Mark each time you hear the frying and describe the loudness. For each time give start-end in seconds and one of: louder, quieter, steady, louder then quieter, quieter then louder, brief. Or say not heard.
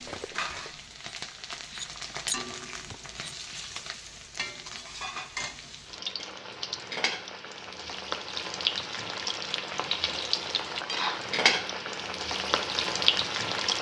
0.0-13.7 louder.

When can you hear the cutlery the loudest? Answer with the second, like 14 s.
2 s.